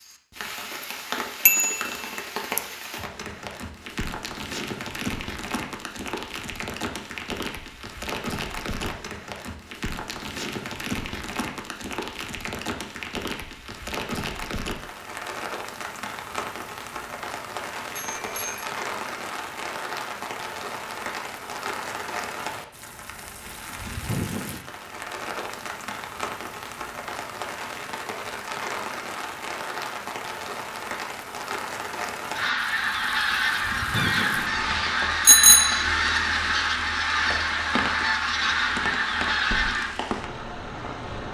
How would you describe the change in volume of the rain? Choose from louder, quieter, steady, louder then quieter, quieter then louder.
steady.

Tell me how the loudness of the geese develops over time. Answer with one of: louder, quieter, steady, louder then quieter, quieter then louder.
steady.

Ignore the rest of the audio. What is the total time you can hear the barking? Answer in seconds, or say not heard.
not heard.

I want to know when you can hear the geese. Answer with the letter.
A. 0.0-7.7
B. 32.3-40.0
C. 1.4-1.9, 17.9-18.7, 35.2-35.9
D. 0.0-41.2
B.